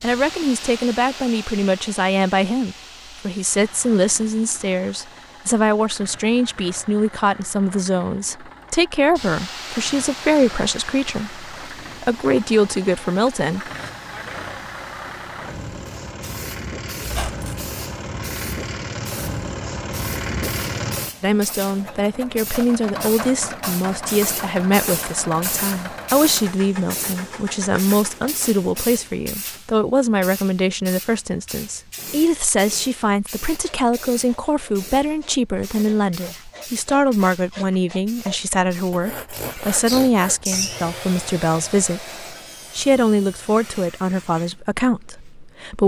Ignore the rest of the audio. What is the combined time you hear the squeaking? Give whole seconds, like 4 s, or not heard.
2 s.